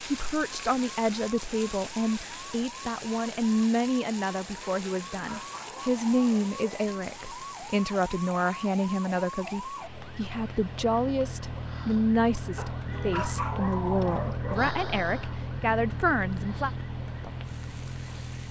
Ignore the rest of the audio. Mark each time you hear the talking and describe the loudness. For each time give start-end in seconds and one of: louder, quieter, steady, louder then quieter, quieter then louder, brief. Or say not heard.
0.0-16.7 steady.